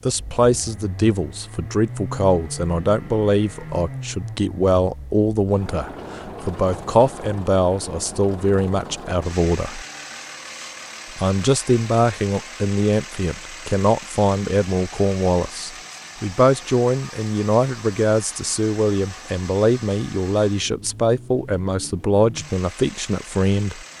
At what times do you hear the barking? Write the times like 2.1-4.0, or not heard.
not heard.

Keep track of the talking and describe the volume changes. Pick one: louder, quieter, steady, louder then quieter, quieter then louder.
steady.